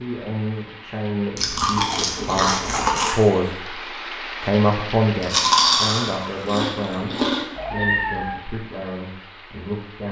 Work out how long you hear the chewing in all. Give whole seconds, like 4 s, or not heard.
4 s.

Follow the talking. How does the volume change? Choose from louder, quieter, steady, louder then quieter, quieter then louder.
louder then quieter.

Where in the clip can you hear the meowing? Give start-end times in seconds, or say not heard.
7.5-8.4.